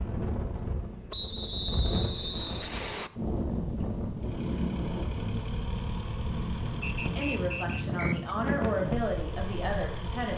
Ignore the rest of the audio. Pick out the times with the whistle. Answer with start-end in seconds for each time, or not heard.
1.1-3.1, 6.8-8.3.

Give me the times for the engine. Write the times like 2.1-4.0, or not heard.
4.2-10.3.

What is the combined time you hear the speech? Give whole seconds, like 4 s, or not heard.
3 s.